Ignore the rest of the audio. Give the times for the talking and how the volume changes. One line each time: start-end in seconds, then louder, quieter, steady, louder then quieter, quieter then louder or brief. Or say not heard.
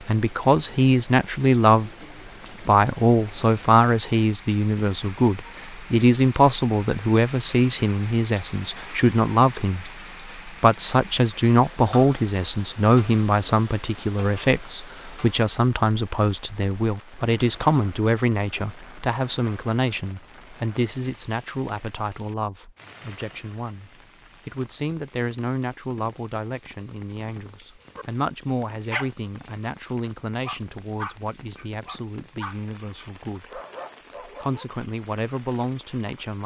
0.1-1.9 brief
2.6-33.6 quieter
34.2-36.4 brief.